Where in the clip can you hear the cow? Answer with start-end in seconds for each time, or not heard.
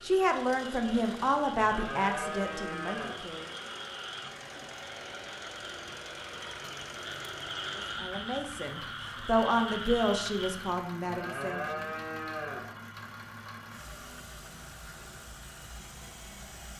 1.6-3.2, 11.0-12.8.